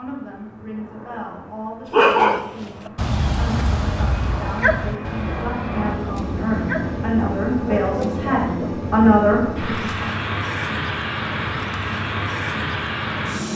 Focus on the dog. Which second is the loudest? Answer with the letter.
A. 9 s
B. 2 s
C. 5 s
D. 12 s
B.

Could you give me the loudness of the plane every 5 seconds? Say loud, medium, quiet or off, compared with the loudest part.
quiet, loud, loud.